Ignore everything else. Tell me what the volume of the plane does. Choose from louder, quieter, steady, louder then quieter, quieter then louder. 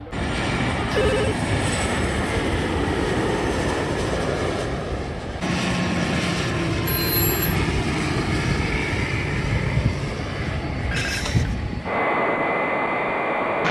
steady.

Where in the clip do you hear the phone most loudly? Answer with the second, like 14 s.
1 s.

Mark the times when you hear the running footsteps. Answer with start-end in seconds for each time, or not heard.
not heard.